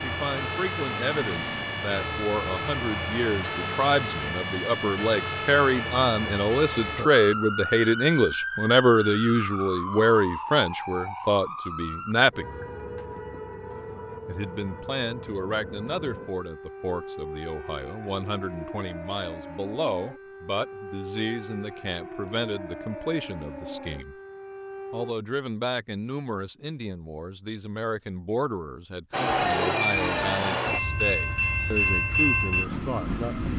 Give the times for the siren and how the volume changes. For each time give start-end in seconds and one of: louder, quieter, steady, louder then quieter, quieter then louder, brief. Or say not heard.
0.0-25.1 quieter.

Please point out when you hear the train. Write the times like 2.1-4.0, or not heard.
29.1-33.5.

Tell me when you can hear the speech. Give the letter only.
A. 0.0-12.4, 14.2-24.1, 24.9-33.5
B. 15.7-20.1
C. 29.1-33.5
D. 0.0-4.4
A.